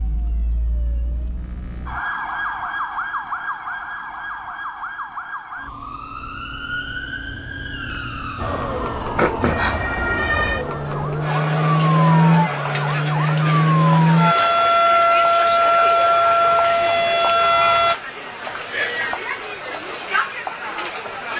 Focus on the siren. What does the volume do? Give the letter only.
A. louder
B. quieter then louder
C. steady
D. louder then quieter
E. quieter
A.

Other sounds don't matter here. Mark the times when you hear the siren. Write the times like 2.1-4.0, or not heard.
0.0-17.9.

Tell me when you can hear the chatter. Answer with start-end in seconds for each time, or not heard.
8.3-21.3.